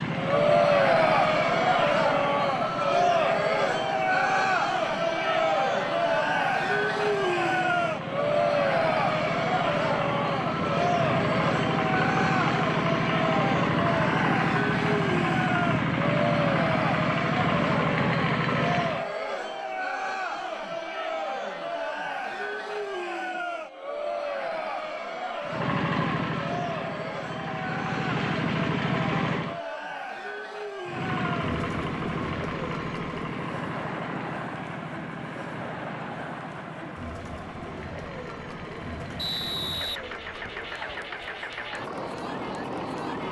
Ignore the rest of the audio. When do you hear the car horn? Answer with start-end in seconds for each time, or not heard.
not heard.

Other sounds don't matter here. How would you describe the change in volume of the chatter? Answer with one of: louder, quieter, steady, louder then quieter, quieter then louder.
quieter.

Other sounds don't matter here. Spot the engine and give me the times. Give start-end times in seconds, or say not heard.
0.0-19.1, 25.4-29.6, 30.9-43.2.